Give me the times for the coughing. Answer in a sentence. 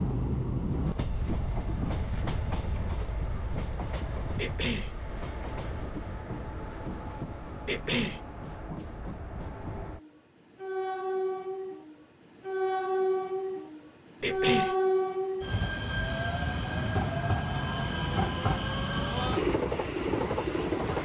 You can hear the coughing from 4.3 to 4.9 s, from 7.7 to 8.2 s and from 14.2 to 14.8 s.